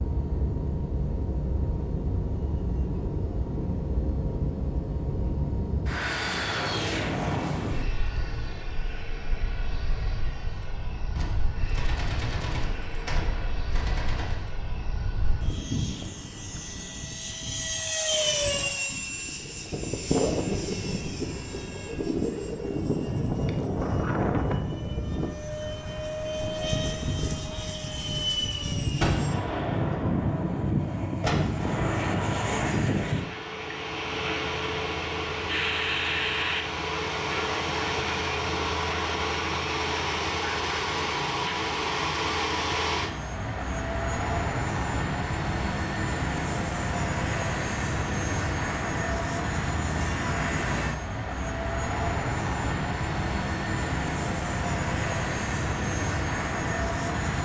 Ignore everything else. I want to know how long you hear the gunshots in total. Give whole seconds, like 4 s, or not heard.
7 s.